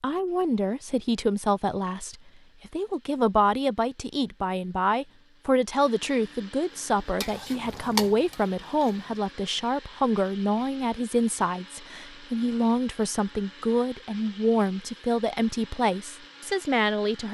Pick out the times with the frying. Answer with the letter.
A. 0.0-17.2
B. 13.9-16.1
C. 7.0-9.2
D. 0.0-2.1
C.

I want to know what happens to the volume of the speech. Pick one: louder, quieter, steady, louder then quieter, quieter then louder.
steady.